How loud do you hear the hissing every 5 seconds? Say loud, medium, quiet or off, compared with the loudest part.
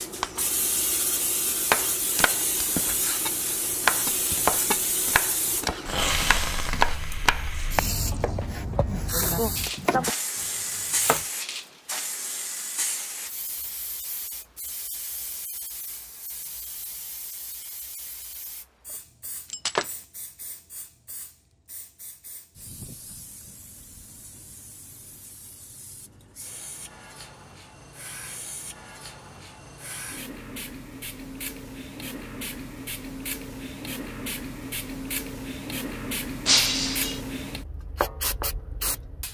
loud, loud, loud, quiet, quiet, quiet, medium, loud.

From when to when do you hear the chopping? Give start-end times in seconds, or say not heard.
1.6-11.2.